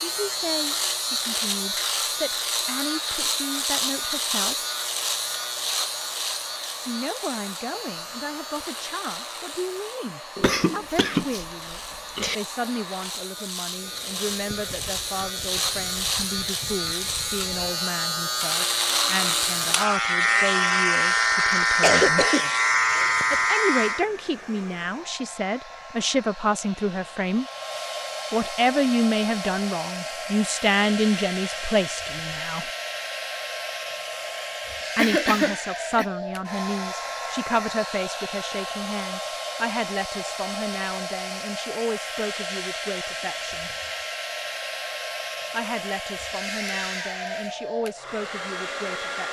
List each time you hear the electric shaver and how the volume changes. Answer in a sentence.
You can hear the electric shaver from 0.0 to 24.1 s, getting quieter then louder.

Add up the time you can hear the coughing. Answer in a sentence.
The coughing can be heard for 5 seconds in total.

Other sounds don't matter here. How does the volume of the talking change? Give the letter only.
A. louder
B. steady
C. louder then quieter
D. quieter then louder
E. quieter
C.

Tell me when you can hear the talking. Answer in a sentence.
You can hear the talking from 0.0 to 4.5 s, from 6.8 to 22.2 s, from 23.3 to 27.4 s, from 28.3 to 32.7 s, from 35.0 to 43.7 s and from 45.5 to 49.2 s.